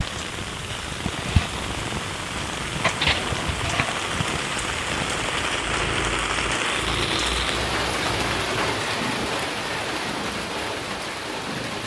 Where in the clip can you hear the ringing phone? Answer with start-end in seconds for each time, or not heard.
not heard.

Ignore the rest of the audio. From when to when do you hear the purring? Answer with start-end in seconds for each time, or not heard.
0.0-11.8.